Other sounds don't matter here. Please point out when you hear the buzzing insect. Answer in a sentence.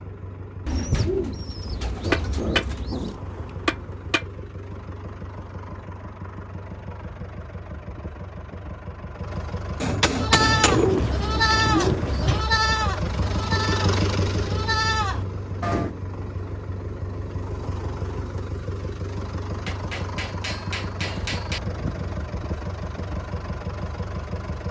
You can't hear the buzzing insect here.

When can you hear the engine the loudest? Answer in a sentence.
The loudest moment of the engine is at 14 seconds.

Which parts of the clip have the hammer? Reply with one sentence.
You can hear the hammer from 2.0 to 4.2 s, from 9.8 to 11.1 s and from 19.6 to 21.6 s.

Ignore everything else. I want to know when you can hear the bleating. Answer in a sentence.
You can hear the bleating from 10.1 to 15.9 s.